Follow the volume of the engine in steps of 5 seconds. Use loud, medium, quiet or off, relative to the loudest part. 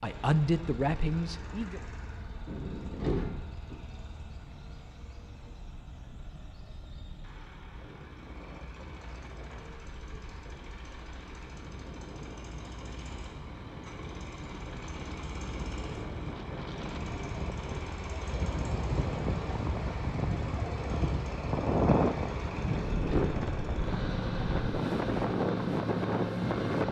quiet, quiet, quiet, medium, loud, loud.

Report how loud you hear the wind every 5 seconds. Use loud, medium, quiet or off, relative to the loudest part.
quiet, quiet, quiet, medium, loud, loud.